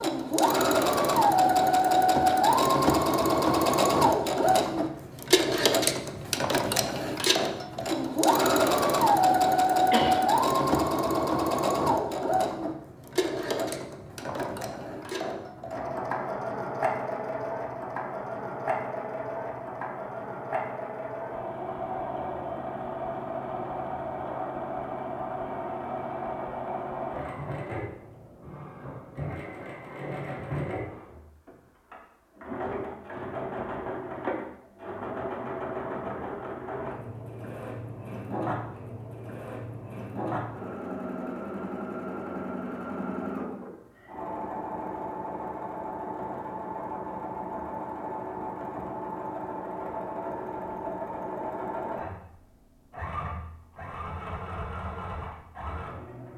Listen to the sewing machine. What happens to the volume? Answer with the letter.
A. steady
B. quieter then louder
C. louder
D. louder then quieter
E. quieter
E.